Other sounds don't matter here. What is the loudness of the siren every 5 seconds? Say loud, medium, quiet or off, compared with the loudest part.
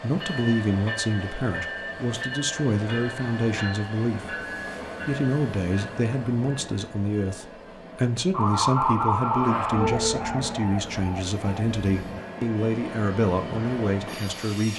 off, loud, medium.